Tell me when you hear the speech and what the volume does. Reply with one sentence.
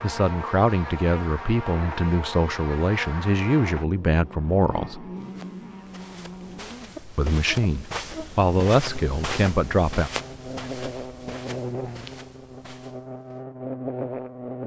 The speech can be heard from 0.0 to 5.0 s, at a steady volume; and briefly from 7.2 to 10.1 s.